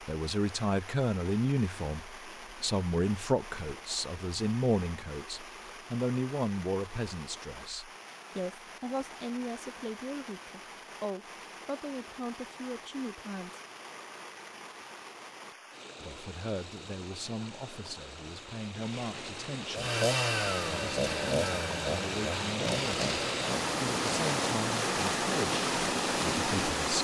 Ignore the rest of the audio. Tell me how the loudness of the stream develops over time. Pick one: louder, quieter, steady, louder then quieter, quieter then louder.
louder.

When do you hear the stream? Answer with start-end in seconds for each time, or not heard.
0.0-26.9.